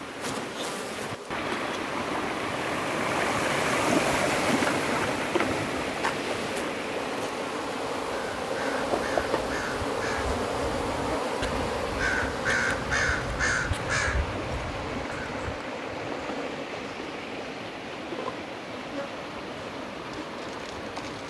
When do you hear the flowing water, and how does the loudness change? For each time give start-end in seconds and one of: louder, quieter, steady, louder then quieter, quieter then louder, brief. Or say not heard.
0.0-21.2 quieter.